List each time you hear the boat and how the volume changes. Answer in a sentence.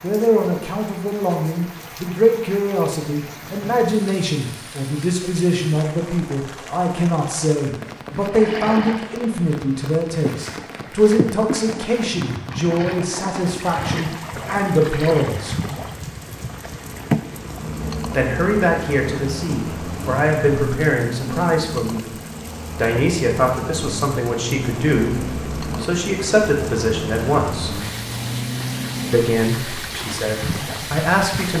You can hear the boat from 8.3 to 31.5 s, at a steady volume.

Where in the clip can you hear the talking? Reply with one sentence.
The talking can be heard from 0.0 to 15.6 s, from 18.1 to 22.1 s, from 22.8 to 27.8 s and from 29.1 to 31.5 s.